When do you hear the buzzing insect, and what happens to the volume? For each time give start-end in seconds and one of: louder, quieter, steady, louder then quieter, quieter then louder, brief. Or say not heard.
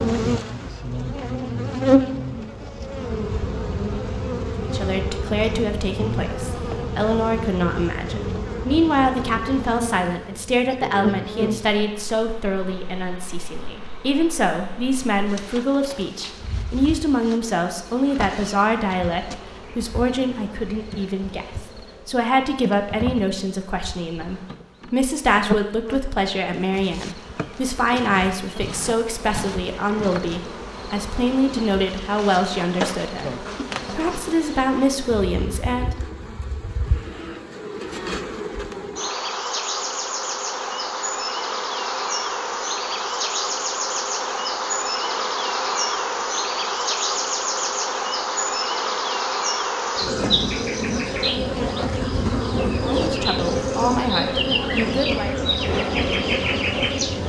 0.0-57.2 quieter then louder.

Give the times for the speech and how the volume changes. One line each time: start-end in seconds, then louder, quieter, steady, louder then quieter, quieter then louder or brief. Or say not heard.
4.5-36.0 steady
52.9-55.4 brief.